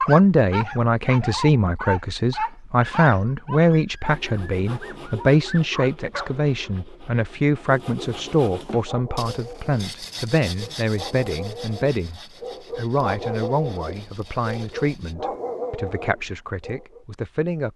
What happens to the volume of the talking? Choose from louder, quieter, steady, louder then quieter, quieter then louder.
quieter.